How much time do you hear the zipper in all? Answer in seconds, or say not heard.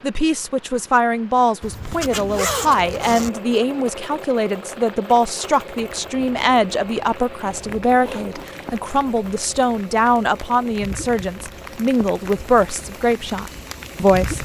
3 s.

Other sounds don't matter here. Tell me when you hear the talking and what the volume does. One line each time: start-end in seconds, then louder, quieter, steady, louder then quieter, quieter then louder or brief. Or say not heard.
0.0-14.3 steady.